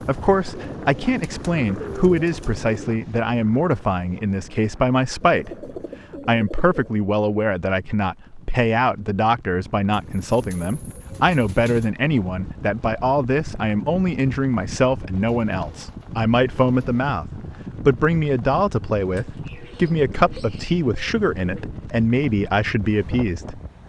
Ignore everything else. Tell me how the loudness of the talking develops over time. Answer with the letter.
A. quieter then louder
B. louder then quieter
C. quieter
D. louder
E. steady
E.